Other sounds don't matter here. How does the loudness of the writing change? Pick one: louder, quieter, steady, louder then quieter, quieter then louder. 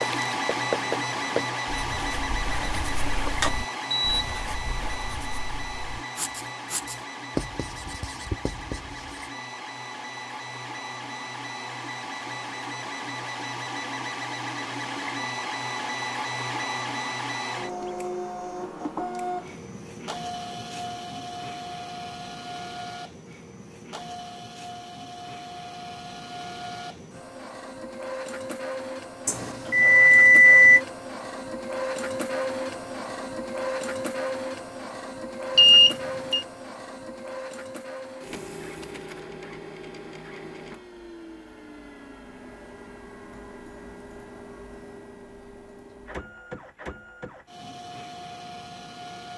quieter then louder.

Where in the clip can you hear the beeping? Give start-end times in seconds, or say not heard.
2.5-4.2, 29.2-30.8, 35.5-36.5.